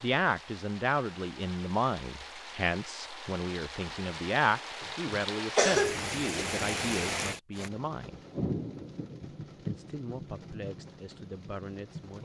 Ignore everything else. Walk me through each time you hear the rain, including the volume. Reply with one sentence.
The rain can be heard from 0.0 to 12.2 s, getting louder then quieter.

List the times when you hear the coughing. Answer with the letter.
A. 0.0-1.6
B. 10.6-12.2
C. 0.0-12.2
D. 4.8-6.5
D.